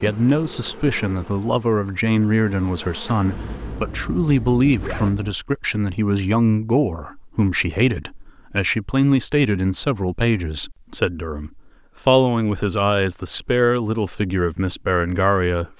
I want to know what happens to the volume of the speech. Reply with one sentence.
The volume of the speech stays about the same.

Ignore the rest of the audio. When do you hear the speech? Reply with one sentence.
You can hear the speech from 0.0 to 15.7 s.